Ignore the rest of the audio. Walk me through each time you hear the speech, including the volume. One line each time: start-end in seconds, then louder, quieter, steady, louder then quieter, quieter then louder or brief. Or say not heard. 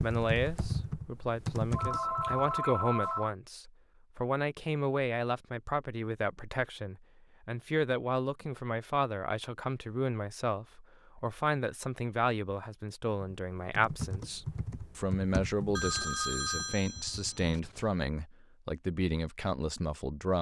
0.0-20.3 steady.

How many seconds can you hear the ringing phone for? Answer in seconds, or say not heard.
4 s.